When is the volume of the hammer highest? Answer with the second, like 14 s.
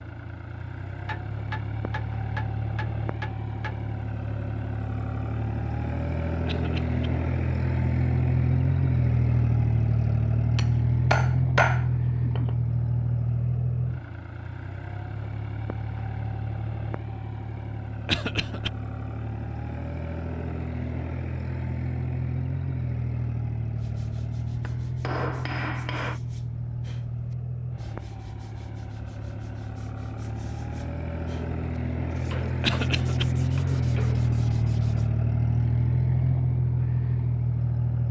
12 s.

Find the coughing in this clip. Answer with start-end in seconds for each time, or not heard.
6.5-7.0, 18.1-18.7, 32.6-33.2.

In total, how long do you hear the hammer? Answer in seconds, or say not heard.
8 s.